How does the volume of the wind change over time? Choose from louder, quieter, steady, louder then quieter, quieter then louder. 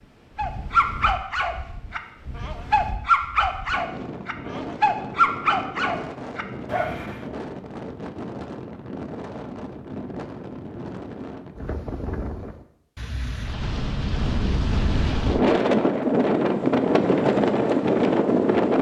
louder.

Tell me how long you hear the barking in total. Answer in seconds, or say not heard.
7 s.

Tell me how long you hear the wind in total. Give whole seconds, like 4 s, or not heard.
19 s.